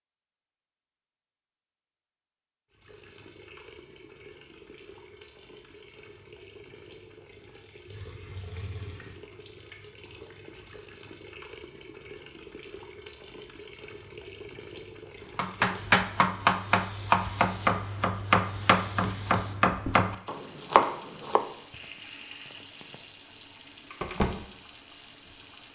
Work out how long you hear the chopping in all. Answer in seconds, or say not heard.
6 s.